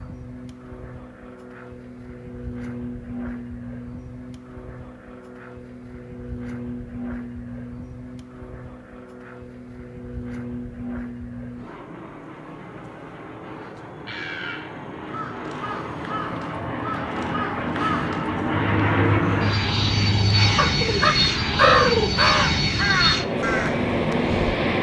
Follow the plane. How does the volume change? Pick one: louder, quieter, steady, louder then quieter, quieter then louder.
louder.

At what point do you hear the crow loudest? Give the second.
22 s.